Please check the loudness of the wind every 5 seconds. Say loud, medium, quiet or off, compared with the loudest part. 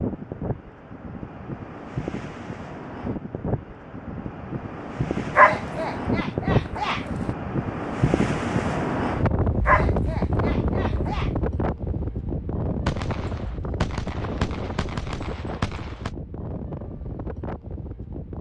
medium, loud, loud, medium.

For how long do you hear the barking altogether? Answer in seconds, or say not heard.
4 s.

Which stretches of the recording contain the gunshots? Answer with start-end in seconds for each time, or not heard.
12.8-16.1.